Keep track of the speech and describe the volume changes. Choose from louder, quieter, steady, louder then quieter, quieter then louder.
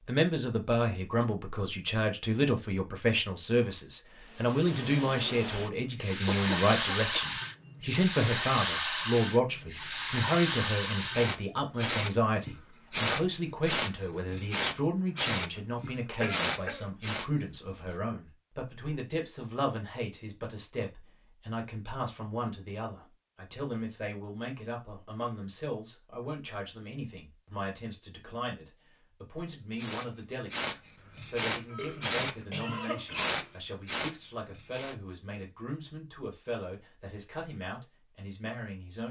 quieter.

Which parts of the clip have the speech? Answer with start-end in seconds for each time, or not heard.
0.0-39.0.